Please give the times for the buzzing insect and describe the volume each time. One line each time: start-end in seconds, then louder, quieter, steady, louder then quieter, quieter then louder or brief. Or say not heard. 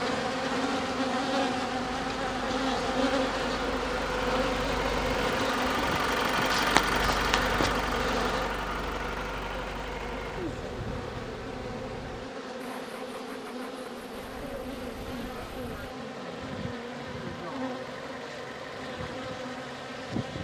0.0-20.3 quieter.